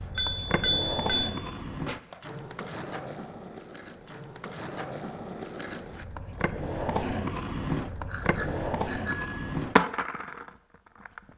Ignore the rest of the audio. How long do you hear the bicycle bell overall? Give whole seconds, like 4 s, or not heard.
3 s.